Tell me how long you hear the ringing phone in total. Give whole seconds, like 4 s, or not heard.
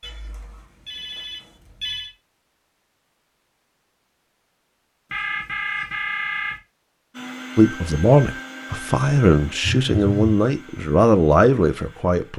4 s.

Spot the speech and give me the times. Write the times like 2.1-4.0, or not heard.
7.5-12.3.